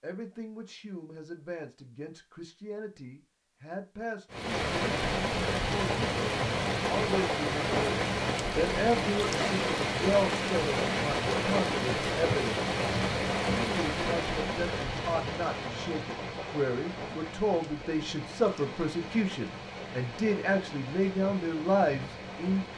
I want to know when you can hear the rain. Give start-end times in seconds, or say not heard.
4.3-22.7.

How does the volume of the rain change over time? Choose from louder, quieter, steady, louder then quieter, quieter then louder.
quieter.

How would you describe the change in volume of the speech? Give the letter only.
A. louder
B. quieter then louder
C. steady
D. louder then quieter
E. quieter
A.